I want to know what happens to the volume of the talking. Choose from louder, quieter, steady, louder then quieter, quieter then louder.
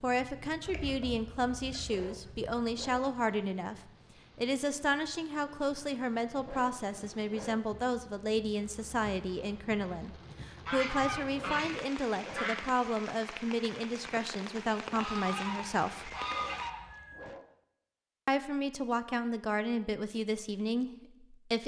steady.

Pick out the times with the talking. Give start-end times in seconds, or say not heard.
0.0-16.1, 18.2-21.6.